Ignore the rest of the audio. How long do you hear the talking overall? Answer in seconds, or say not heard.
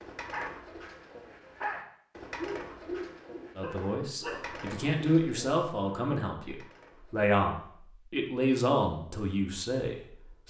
7 s.